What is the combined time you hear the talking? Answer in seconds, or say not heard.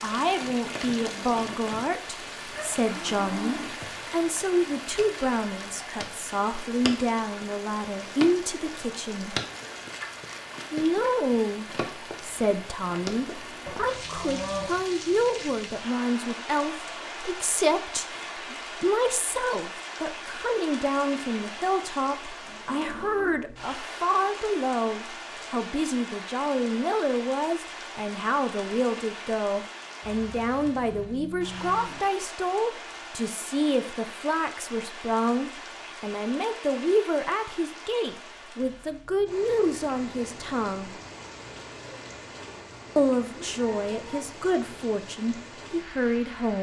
43 s.